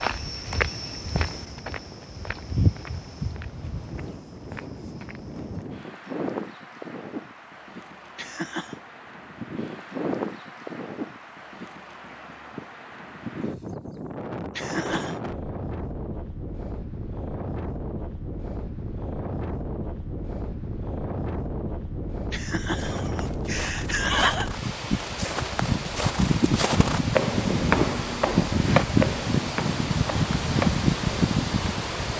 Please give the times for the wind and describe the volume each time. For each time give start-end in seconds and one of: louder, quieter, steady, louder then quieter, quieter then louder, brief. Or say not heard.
0.0-32.1 louder.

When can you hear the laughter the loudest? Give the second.
24 s.